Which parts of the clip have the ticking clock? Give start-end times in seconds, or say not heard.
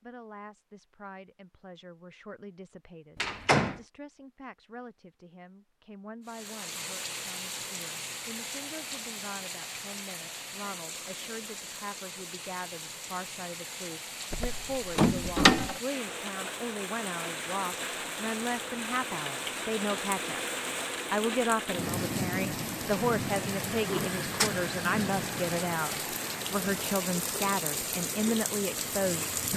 not heard.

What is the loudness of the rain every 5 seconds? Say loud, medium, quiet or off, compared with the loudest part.
off, medium, medium, loud, loud, loud.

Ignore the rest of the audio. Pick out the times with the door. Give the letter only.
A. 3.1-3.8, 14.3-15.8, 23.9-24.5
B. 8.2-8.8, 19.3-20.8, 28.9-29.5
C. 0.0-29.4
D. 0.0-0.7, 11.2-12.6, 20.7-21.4
A.